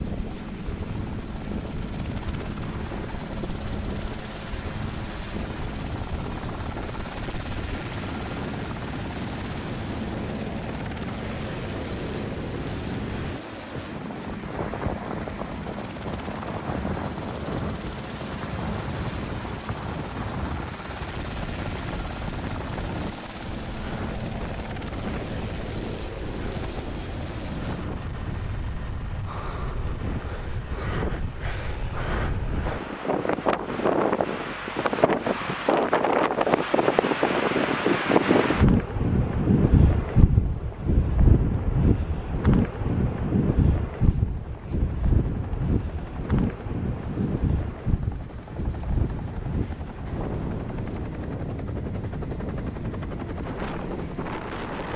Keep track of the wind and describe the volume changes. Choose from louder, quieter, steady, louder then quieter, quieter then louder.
louder then quieter.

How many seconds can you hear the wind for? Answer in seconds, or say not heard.
55 s.